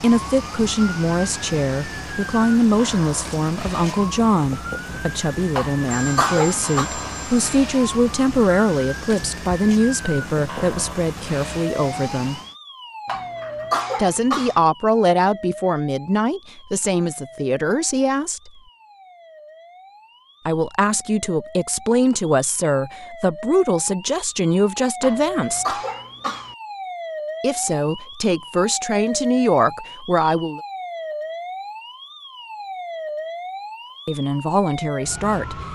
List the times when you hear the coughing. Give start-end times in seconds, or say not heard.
5.5-6.9, 13.1-14.6, 25.0-26.6.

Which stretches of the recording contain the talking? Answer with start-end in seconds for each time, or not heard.
0.0-12.4, 13.9-18.5, 20.4-25.8, 27.4-30.6, 34.0-35.5.